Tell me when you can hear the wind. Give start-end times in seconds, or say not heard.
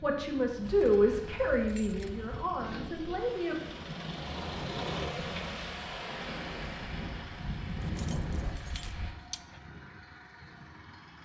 0.1-9.2.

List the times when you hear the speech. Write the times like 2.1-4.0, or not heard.
0.0-3.5.